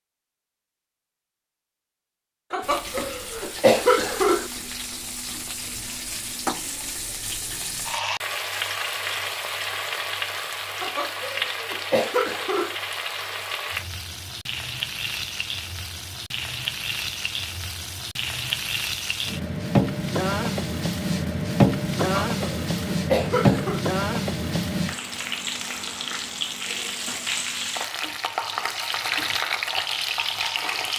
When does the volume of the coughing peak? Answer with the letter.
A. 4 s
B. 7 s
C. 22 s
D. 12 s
A.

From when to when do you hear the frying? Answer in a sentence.
You can hear the frying from 2.6 to 30.9 s.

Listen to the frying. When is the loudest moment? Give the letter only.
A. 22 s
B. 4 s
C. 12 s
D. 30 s
A.